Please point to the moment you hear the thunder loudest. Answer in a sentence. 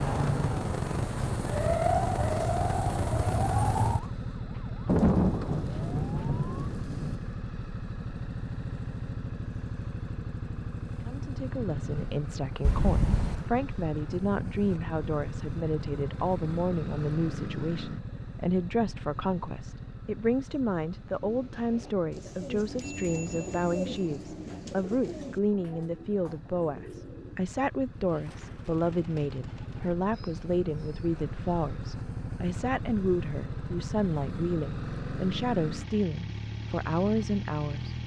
The volume of the thunder peaks at 5 seconds.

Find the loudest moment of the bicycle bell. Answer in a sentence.
The loudest moment of the bicycle bell is at 13 seconds.